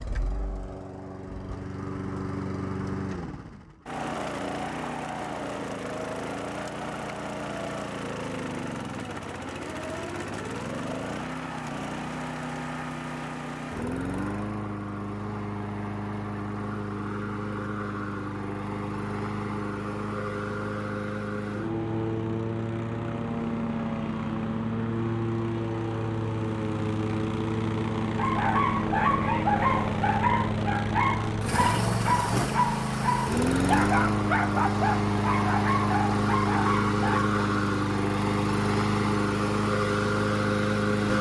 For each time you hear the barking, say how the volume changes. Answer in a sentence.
You can hear the barking from 28.0 to 37.4 s, at a steady volume.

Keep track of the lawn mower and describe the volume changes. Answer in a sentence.
The loudness of the lawn mower goes up.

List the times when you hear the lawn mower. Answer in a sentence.
You can hear the lawn mower from 0.0 to 41.1 s.